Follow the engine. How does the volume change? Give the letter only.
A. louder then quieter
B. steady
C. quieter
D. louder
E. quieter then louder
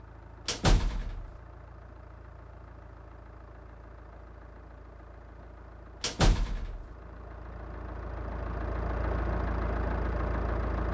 D.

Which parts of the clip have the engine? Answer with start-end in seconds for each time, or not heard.
0.0-10.9.